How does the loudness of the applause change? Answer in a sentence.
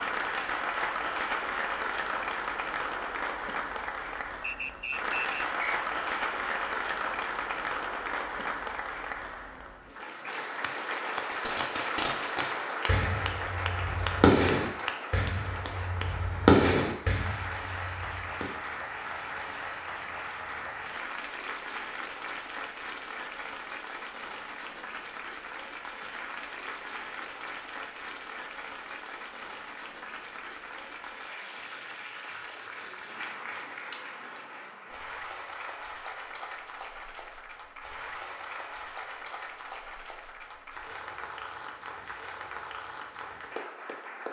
The loudness of the applause goes down.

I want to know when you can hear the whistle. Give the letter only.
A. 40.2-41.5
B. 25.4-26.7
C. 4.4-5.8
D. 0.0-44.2
C.